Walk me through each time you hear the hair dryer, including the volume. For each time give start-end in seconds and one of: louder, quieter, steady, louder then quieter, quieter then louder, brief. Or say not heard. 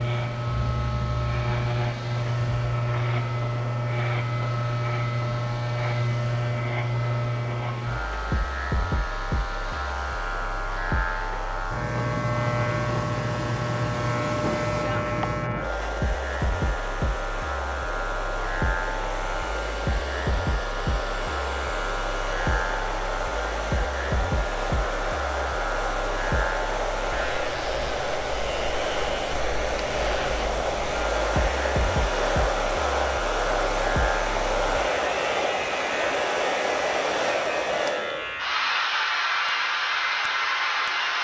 0.0-41.1 louder.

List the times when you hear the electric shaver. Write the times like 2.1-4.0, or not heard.
0.0-41.1.